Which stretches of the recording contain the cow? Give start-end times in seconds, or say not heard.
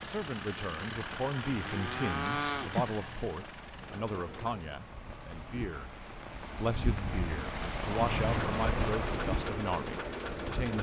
1.4-3.0.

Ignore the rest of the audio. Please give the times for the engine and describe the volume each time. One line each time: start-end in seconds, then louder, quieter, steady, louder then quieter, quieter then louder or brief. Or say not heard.
0.0-4.7 quieter
8.4-10.7 brief.